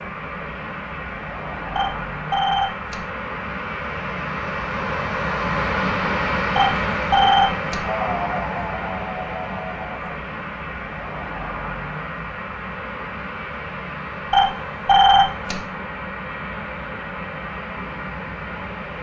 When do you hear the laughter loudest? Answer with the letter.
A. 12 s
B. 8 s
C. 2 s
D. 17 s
B.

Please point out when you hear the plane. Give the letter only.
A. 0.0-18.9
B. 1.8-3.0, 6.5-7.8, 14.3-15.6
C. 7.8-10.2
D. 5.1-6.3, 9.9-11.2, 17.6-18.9
A.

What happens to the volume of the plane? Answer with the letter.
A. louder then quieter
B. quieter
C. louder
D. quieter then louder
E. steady
A.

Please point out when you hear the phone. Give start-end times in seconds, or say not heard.
1.8-3.0, 6.5-7.8, 14.3-15.6.